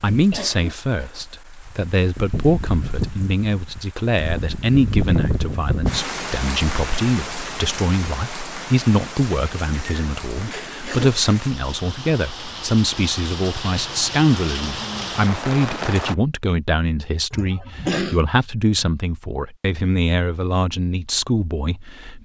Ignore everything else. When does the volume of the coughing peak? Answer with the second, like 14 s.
18 s.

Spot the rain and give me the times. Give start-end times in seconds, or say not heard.
0.0-16.1.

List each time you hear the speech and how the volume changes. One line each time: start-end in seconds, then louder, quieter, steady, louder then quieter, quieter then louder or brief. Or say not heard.
0.0-22.2 steady.